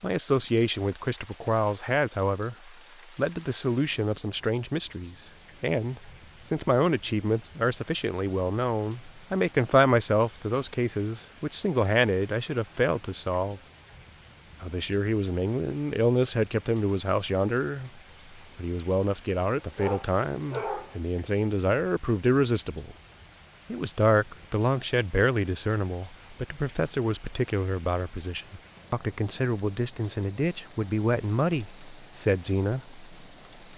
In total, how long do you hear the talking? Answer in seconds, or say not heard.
31 s.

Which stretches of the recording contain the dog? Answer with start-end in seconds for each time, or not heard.
19.6-20.9.